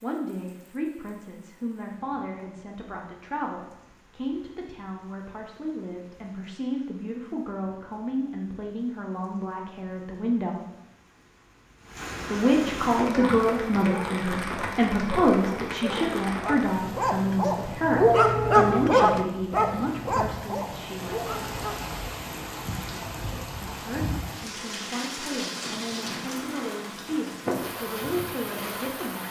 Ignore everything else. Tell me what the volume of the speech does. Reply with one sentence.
The loudness of the speech goes up, then down.